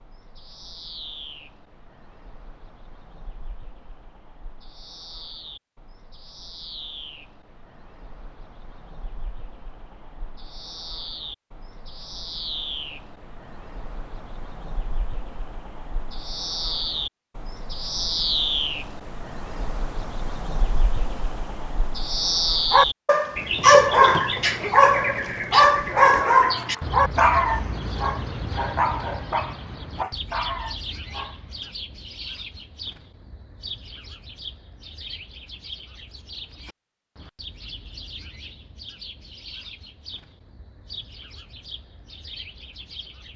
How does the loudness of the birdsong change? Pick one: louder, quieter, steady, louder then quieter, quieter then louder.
louder then quieter.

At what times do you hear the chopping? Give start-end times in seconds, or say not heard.
not heard.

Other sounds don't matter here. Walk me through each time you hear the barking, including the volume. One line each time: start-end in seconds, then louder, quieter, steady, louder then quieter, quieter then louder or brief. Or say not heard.
22.7-31.7 quieter.